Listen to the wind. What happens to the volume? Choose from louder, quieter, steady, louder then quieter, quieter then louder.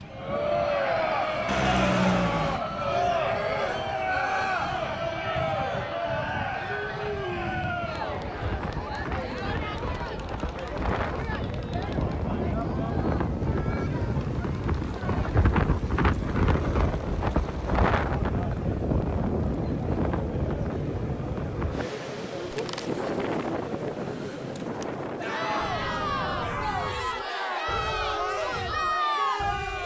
louder then quieter.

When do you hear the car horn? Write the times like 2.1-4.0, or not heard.
1.4-2.6.